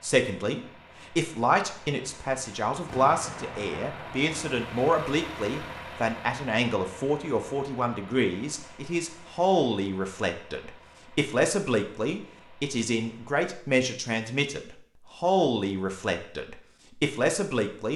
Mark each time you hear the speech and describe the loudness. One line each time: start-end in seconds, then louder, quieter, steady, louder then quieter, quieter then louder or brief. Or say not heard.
0.0-17.9 steady.